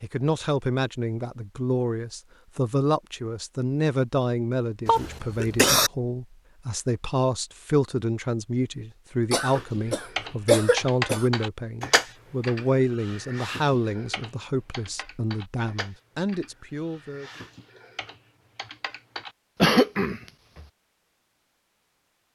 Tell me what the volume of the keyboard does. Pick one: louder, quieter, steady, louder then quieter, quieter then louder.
quieter.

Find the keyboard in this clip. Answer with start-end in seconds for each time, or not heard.
9.3-19.4.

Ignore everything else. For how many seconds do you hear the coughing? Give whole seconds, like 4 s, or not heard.
4 s.